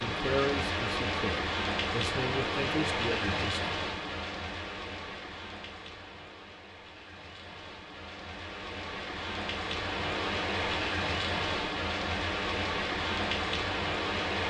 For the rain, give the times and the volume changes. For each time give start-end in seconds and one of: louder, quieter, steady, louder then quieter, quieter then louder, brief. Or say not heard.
0.0-14.4 quieter then louder.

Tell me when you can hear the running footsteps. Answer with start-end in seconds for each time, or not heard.
not heard.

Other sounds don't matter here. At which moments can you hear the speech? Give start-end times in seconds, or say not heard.
0.0-3.7.